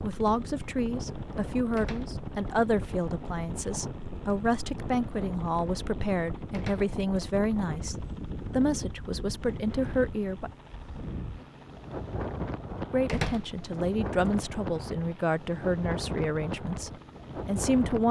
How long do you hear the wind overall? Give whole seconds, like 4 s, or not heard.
18 s.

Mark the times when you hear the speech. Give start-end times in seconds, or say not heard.
0.0-10.5, 12.9-18.0.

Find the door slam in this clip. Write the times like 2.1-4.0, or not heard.
1.8-2.2, 6.5-6.9, 13.1-13.6.